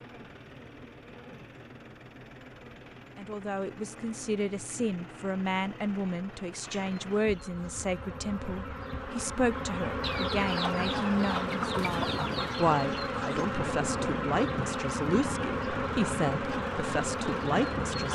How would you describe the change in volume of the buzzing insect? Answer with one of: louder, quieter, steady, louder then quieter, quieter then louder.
louder.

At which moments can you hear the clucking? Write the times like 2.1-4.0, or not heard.
10.0-12.8.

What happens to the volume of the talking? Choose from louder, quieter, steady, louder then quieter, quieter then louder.
steady.